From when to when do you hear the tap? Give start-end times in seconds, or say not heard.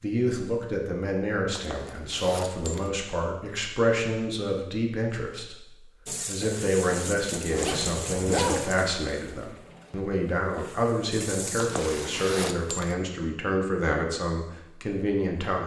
6.0-12.6.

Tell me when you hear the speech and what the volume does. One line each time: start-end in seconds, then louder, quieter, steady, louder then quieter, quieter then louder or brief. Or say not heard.
0.0-15.6 steady.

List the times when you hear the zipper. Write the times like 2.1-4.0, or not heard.
1.6-2.9, 7.5-8.7, 11.6-12.9.